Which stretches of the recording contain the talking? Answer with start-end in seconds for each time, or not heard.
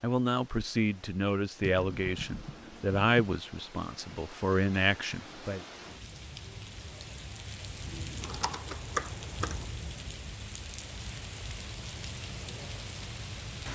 0.0-5.7.